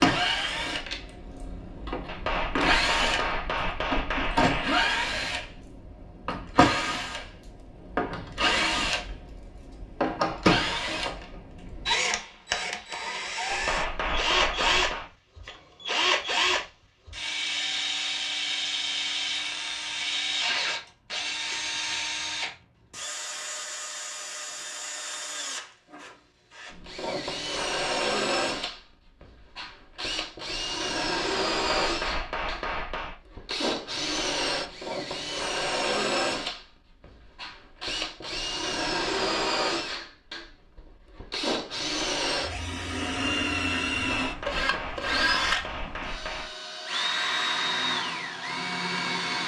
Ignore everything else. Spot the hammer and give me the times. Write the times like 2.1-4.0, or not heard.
2.0-4.8, 13.5-15.1, 31.5-33.1, 43.9-46.5.